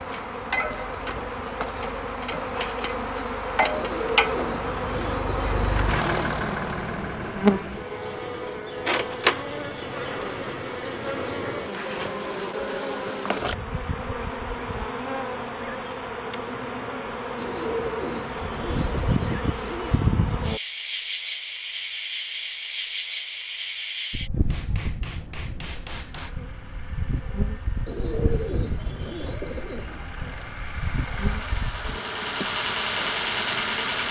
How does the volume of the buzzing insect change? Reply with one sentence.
The loudness of the buzzing insect goes down.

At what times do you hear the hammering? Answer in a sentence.
The hammering can be heard from 24.4 to 26.4 s.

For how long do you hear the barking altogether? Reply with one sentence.
You can't hear the barking here.